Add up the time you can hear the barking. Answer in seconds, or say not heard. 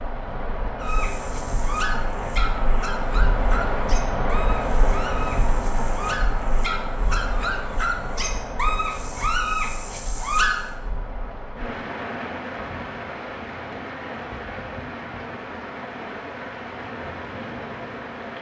10 s.